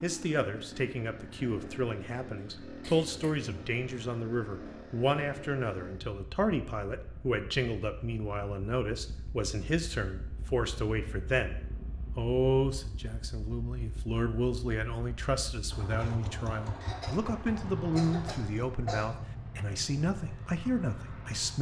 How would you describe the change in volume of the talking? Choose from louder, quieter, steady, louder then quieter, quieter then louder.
steady.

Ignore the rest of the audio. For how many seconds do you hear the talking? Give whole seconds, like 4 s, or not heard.
21 s.